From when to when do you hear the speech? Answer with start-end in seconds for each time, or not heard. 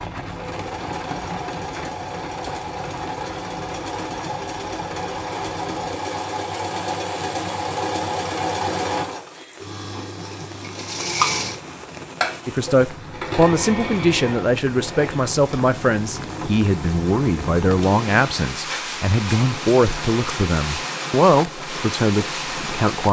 12.4-23.0.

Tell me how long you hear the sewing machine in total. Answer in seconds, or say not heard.
23 s.